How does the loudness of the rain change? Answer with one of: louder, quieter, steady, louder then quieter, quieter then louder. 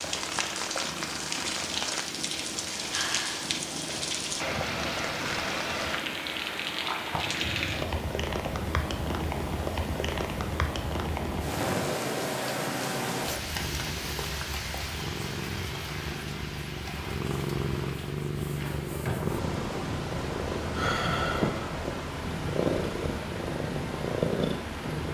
quieter.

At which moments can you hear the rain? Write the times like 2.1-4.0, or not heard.
0.0-25.0.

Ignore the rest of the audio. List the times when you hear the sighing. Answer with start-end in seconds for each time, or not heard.
2.9-3.5, 11.4-12.0, 20.7-21.6.